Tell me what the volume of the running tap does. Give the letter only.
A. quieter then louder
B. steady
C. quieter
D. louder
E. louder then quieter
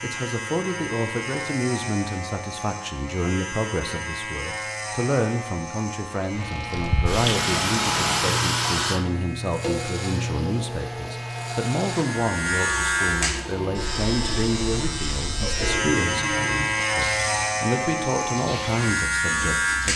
C.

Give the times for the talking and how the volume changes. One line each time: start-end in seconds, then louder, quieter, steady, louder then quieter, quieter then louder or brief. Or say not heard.
0.0-19.9 steady.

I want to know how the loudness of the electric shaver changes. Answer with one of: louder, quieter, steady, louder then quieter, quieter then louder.
louder.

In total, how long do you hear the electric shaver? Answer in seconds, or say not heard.
20 s.